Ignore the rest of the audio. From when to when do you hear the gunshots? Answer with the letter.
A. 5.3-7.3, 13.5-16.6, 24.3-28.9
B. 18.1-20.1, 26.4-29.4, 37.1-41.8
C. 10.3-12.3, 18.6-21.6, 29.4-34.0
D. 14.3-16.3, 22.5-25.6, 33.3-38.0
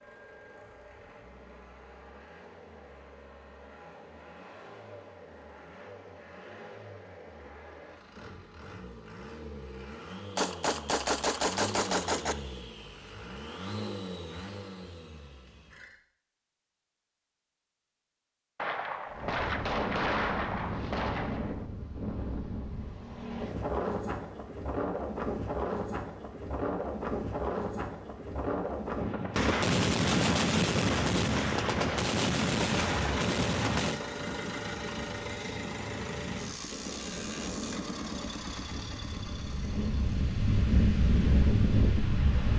C.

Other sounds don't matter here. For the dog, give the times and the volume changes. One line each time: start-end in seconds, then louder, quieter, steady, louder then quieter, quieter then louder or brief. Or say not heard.
not heard.